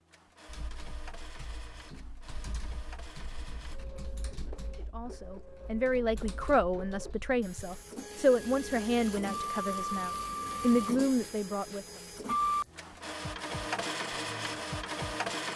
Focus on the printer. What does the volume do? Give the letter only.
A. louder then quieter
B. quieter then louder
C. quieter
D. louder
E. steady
D.